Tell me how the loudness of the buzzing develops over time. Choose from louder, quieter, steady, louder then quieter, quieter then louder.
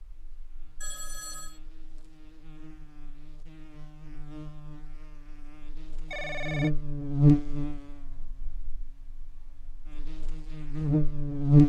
louder then quieter.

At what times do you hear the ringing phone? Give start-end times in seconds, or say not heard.
0.8-1.6, 6.1-6.7.